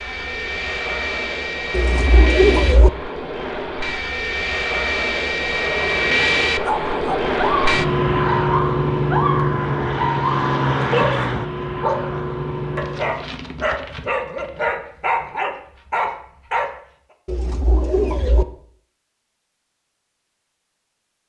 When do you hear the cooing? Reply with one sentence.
You can hear the cooing from 1.7 to 2.9 s and from 17.2 to 18.4 s.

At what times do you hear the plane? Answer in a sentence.
You can hear the plane from 0.0 to 13.2 s.